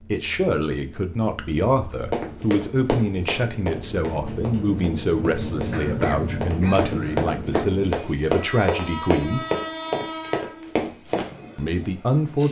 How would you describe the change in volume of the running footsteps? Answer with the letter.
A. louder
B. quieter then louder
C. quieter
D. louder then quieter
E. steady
B.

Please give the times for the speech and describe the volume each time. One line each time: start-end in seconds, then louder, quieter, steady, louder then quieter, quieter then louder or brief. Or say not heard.
0.1-9.4 steady
11.6-12.4 brief.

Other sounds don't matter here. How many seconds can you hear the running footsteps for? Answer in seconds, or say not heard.
9 s.